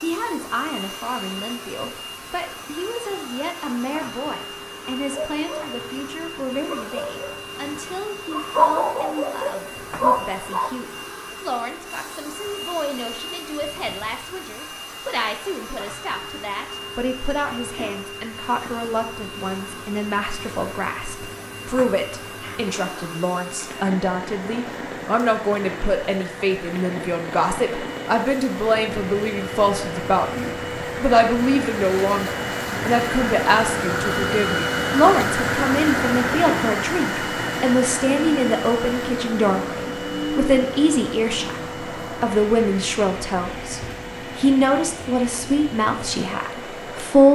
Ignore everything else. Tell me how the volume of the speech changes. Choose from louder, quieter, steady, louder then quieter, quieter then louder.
louder.